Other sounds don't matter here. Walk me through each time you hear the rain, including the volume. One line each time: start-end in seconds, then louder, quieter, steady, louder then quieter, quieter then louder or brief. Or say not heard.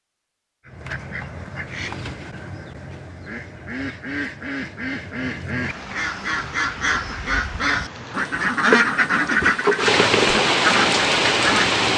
5.6-11.9 louder.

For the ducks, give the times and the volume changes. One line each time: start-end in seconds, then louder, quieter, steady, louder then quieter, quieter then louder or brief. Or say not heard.
0.7-11.8 louder.